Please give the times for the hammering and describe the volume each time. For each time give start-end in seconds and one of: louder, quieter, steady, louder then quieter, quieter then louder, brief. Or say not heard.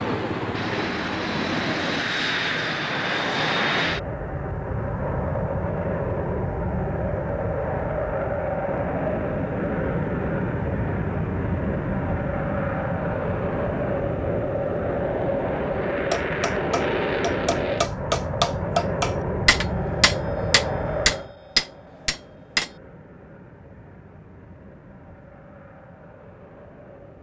16.1-22.7 louder.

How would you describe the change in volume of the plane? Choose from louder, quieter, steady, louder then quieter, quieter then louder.
quieter.